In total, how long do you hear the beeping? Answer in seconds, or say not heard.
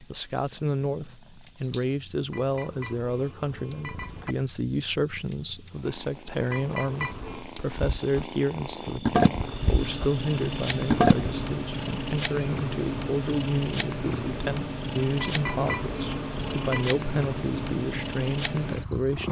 5 s.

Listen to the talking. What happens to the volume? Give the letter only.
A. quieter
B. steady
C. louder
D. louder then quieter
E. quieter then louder
B.